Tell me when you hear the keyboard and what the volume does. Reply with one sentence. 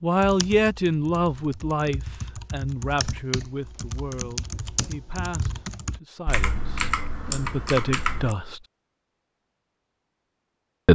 You can hear the keyboard from 0.1 to 8.3 s, getting louder.